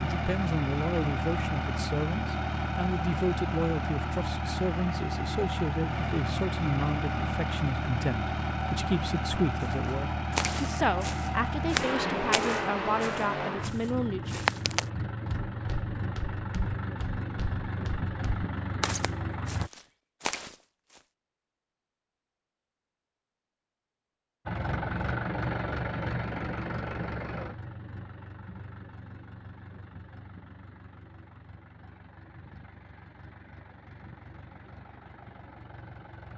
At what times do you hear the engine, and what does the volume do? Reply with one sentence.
The engine can be heard from 0.0 to 19.7 s, at a steady volume; and from 24.4 to 36.3 s, getting quieter.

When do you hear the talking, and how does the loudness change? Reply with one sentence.
The talking can be heard from 0.0 to 14.4 s, at a steady volume.